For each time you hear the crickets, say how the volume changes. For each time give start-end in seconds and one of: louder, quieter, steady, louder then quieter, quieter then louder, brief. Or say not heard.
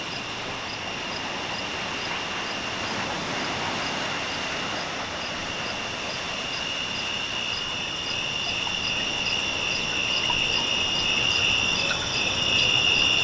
0.0-13.2 louder.